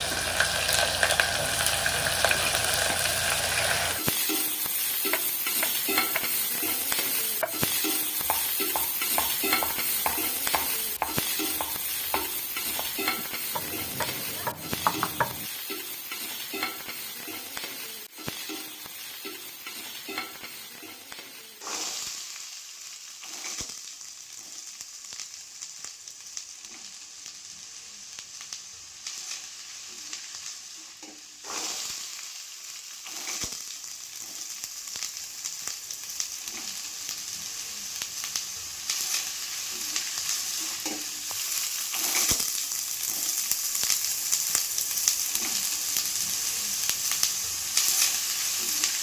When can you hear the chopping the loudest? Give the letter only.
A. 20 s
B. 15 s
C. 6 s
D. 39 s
B.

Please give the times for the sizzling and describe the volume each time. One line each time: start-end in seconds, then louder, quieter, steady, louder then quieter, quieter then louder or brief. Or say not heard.
0.0-48.9 quieter then louder.